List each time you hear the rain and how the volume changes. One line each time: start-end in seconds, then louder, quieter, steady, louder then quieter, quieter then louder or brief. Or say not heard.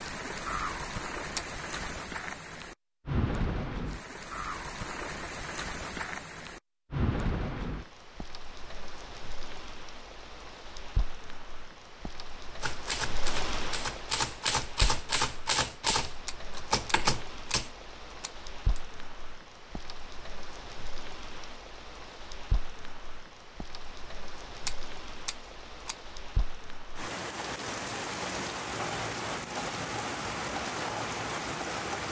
0.0-32.0 quieter then louder.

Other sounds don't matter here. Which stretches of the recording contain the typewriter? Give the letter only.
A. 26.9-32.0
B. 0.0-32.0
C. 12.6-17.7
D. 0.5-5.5
C.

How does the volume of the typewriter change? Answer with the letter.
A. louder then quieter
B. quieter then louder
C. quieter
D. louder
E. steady
D.